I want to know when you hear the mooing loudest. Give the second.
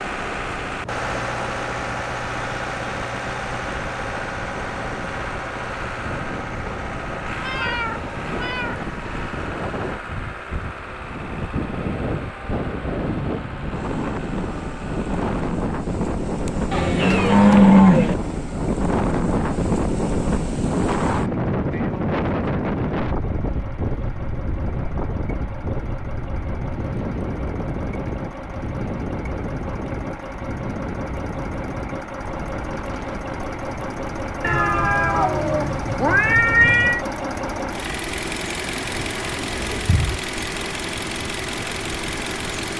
18 s.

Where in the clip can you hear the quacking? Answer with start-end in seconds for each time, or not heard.
not heard.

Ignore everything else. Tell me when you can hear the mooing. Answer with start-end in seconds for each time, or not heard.
16.7-18.1, 38.8-40.2.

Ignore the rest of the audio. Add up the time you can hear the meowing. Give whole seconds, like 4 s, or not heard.
5 s.